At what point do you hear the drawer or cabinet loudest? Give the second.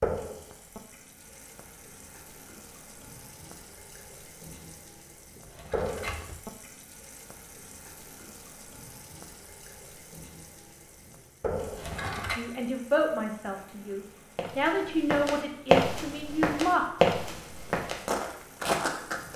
12 s.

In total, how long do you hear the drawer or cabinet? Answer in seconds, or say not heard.
2 s.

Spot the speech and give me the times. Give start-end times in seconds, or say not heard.
12.3-16.9.